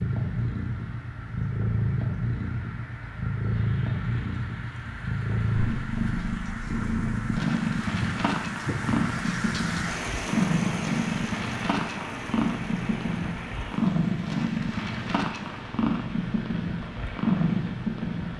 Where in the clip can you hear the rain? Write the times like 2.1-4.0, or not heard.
0.0-18.3.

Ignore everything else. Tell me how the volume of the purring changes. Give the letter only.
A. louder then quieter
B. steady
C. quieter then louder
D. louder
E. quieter
B.